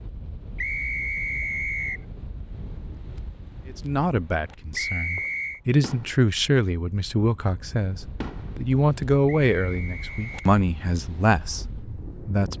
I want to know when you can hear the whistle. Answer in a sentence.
The whistle can be heard from 0.6 to 2.0 s, from 4.8 to 5.6 s and from 9.4 to 10.6 s.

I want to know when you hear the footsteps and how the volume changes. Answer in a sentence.
The footsteps can't be heard in this clip.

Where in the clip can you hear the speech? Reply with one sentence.
The speech can be heard from 3.6 to 12.5 s.